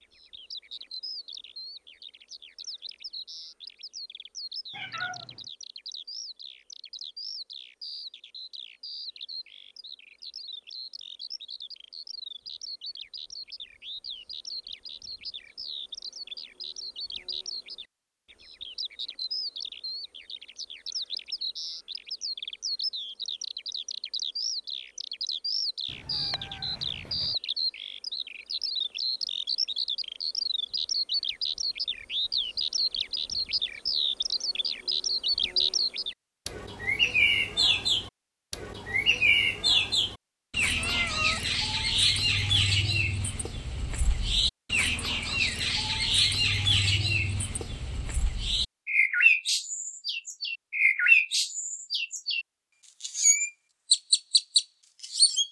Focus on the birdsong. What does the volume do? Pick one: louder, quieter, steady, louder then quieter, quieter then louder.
louder.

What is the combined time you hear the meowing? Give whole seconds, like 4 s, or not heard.
3 s.